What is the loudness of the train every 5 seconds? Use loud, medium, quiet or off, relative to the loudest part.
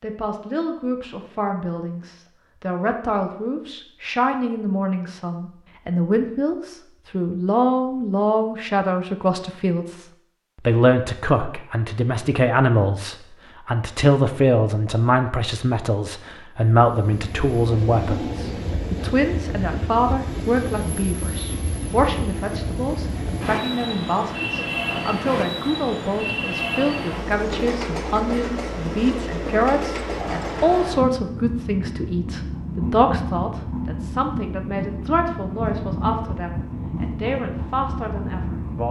off, off, off, loud, loud, loud, loud, loud.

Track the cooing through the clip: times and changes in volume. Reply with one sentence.
The cooing can't be heard in this clip.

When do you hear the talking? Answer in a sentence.
You can hear the talking from 0.0 to 10.1 s and from 10.7 to 38.8 s.